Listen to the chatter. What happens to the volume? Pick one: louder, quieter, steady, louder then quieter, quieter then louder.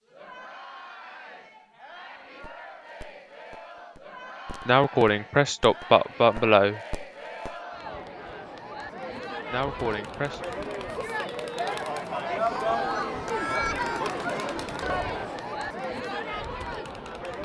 louder.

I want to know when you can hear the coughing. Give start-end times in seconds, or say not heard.
4.7-6.8, 9.5-10.4.